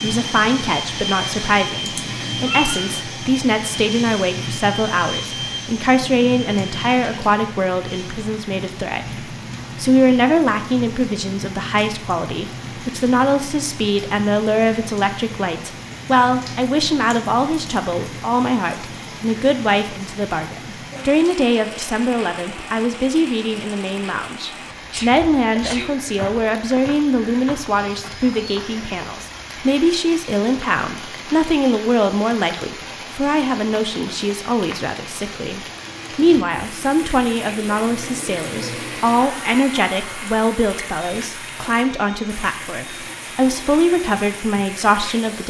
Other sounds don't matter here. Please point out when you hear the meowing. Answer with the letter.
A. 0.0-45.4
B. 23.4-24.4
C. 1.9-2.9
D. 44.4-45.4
C.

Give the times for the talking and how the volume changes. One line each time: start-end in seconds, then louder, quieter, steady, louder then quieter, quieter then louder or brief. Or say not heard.
0.0-45.4 steady.